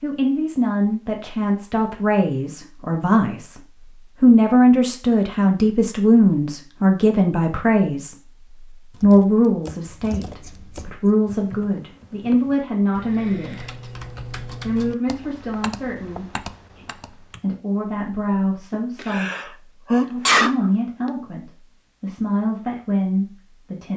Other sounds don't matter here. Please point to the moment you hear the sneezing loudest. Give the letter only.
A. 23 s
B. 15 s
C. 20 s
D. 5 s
C.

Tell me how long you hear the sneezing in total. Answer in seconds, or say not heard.
2 s.